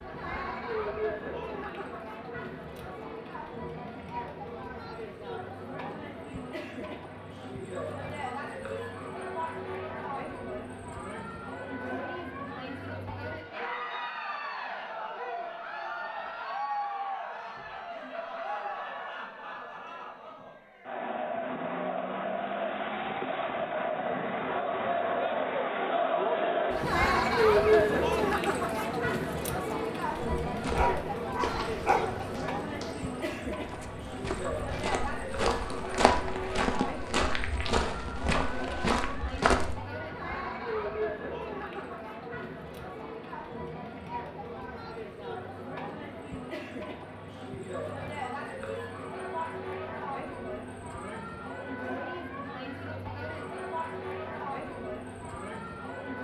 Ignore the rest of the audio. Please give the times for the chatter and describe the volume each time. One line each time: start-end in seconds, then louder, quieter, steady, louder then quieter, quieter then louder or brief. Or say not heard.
0.0-56.1 louder then quieter.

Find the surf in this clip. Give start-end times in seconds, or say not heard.
not heard.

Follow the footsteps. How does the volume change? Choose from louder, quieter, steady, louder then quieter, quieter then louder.
quieter then louder.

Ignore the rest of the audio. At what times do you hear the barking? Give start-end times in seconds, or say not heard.
30.7-32.2.